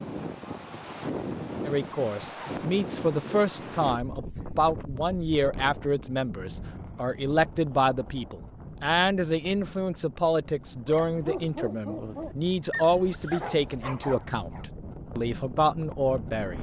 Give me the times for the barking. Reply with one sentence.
The barking can be heard from 10.8 to 14.7 s.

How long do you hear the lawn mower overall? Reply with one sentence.
You can't hear the lawn mower here.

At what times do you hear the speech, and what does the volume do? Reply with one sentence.
The speech can be heard from 1.6 to 16.5 s, at a steady volume.